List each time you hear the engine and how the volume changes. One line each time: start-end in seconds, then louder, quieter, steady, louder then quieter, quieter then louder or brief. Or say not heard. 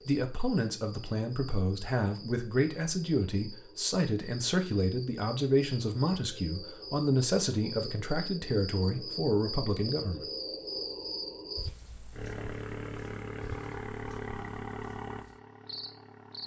12.1-16.4 quieter.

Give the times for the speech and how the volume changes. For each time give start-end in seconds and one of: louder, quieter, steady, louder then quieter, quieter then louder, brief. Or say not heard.
0.0-10.2 steady.